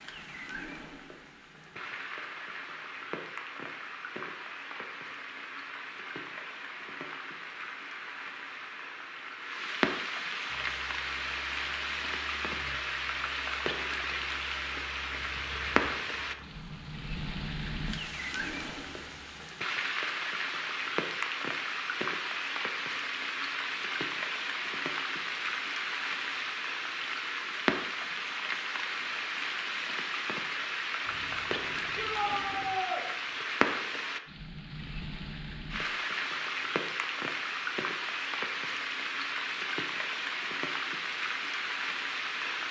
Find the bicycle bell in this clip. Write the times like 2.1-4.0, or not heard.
not heard.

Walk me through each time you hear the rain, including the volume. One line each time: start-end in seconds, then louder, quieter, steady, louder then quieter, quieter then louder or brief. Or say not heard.
0.0-42.6 louder.